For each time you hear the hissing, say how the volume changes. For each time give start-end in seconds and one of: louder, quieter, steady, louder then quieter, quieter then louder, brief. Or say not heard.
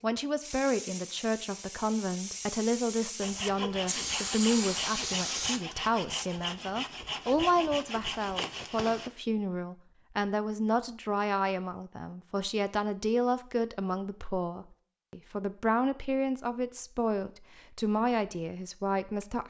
0.4-6.3 louder.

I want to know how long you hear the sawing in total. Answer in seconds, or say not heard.
6 s.